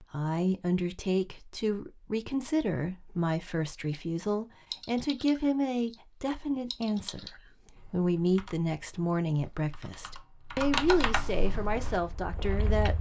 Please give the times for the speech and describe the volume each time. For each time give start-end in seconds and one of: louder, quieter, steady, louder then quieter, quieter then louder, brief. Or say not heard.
0.0-12.9 steady.